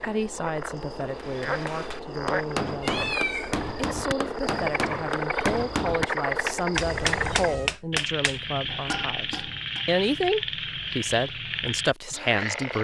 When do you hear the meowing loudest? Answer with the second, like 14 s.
3 s.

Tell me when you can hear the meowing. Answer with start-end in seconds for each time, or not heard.
2.8-3.6, 6.7-7.8.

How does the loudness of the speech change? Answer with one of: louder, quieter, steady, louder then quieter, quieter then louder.
louder.